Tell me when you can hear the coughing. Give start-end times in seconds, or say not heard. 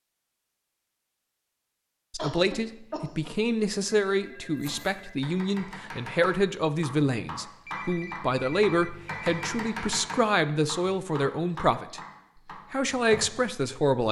2.1-3.4.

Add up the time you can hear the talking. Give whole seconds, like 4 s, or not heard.
11 s.